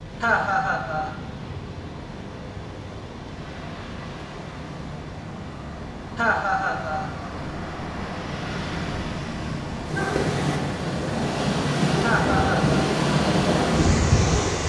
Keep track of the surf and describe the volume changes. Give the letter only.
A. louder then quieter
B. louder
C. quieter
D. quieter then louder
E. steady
B.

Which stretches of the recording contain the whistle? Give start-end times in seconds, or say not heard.
not heard.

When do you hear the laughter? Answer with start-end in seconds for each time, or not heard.
0.2-1.1, 6.2-7.1, 12.0-12.8.